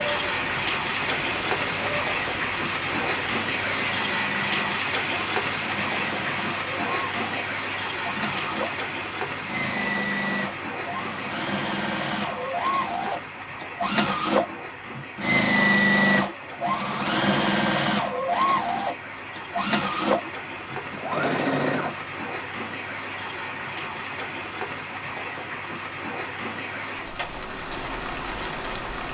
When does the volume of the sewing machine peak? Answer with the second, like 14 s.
16 s.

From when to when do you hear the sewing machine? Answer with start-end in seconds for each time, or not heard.
0.0-22.1.